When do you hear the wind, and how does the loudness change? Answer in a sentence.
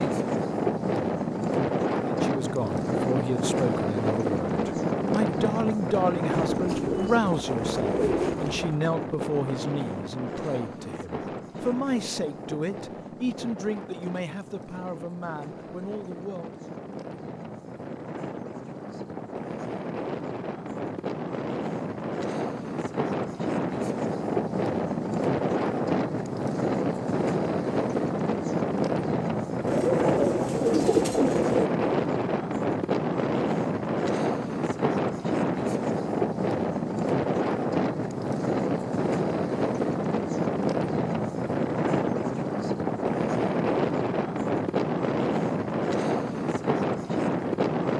You can hear the wind from 0.0 to 47.9 s, getting quieter then louder.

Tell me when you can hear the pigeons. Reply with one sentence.
The pigeons can be heard from 6.5 to 8.7 s and from 29.6 to 31.7 s.